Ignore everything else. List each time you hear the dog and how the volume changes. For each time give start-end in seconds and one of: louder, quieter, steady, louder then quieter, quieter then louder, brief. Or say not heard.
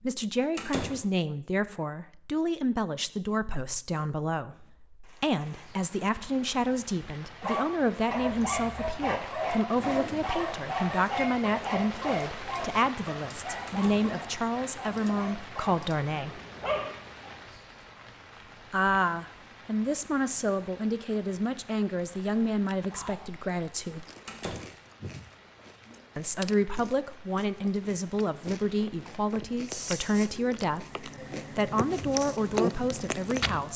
7.4-16.9 quieter.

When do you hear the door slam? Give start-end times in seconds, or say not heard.
0.6-1.0, 13.7-14.1, 24.2-24.7.